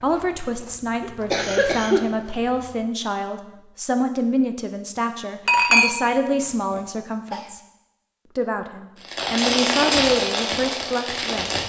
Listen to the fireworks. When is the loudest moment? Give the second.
10 s.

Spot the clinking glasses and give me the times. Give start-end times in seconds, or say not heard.
5.5-6.8.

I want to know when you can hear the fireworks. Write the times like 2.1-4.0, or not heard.
9.0-11.6.